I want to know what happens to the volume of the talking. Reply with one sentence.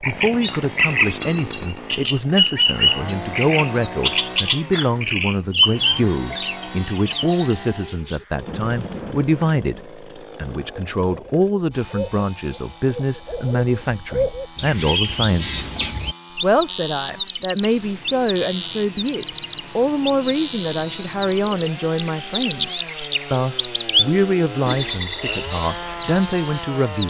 The loudness of the talking stays about the same.